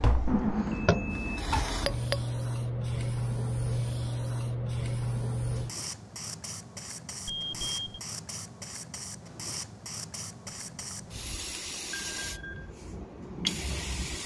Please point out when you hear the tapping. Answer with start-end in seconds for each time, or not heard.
0.0-2.2.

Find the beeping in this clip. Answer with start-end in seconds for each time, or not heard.
0.2-1.4, 7.2-8.0, 10.4-10.9, 11.9-12.7.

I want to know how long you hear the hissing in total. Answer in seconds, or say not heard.
14 s.